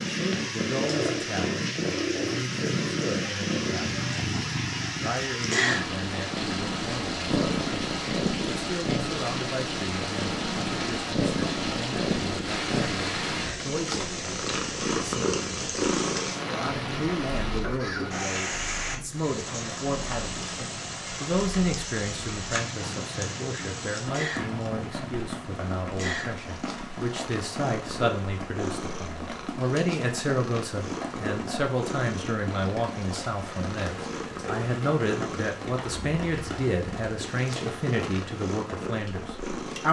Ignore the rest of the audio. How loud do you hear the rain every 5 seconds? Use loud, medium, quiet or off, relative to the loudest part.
loud, loud, loud, loud, loud, medium, medium, medium.